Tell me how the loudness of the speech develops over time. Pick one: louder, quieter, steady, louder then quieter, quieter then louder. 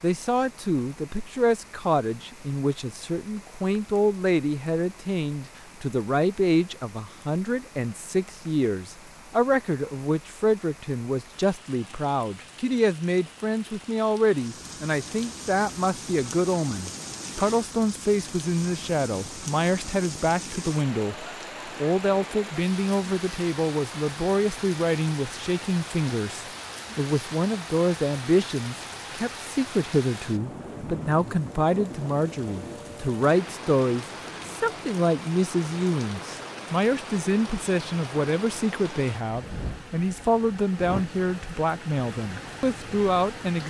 steady.